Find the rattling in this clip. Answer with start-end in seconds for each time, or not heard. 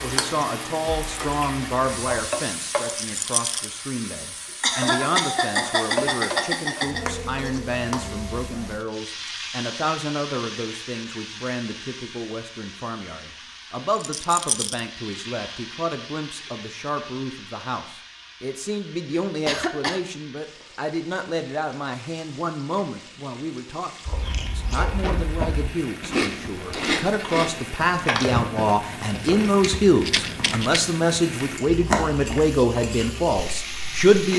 2.8-3.7, 13.9-14.8, 30.0-30.9.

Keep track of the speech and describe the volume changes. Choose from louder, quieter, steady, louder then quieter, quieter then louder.
louder.